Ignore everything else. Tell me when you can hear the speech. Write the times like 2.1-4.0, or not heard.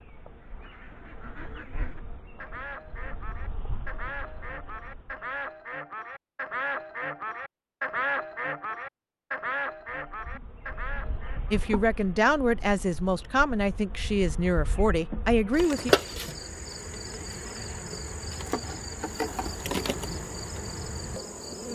11.5-15.9.